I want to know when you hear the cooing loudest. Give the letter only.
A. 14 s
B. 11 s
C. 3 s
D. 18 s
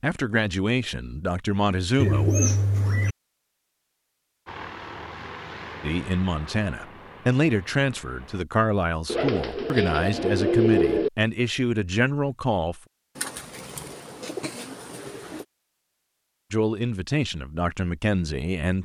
B.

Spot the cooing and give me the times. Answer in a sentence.
You can hear the cooing from 1.9 to 3.1 s, from 9.1 to 11.1 s and from 13.2 to 15.4 s.